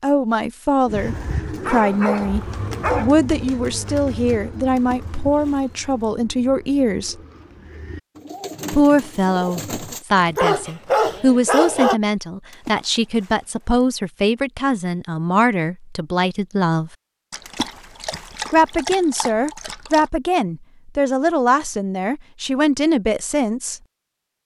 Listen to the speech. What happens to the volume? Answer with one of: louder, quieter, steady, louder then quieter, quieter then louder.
steady.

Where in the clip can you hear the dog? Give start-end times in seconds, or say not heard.
1.6-3.1, 10.2-12.0, 17.3-20.1.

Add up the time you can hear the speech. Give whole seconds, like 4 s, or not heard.
21 s.